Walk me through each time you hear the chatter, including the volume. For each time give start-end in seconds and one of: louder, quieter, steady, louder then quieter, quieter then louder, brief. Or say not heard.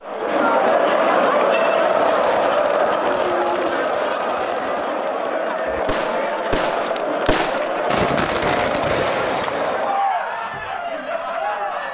0.0-11.8 quieter.